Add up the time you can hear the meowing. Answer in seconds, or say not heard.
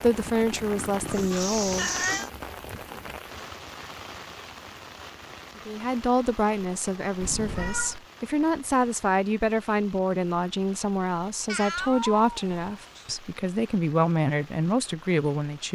4 s.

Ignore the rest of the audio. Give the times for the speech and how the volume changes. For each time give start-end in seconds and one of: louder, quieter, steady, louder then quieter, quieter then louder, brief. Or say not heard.
0.0-2.2 brief
5.7-15.7 steady.